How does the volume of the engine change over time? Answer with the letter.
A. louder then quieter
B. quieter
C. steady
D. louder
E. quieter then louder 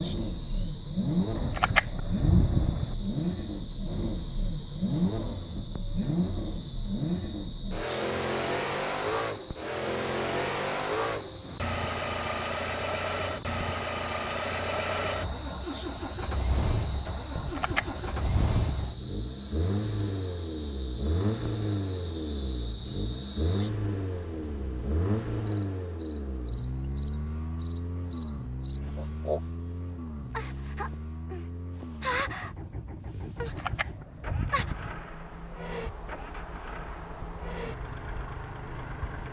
B.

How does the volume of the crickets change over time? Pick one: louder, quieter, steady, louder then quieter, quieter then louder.
louder.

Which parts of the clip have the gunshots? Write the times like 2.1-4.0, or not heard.
1.4-3.0, 17.4-18.9, 33.4-35.0.